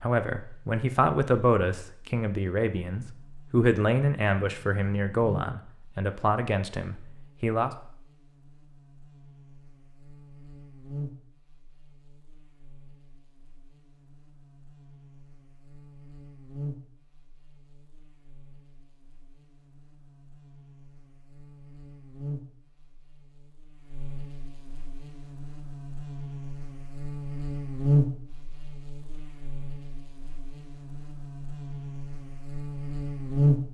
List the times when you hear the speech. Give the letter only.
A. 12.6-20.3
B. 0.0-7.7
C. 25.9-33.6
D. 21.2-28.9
B.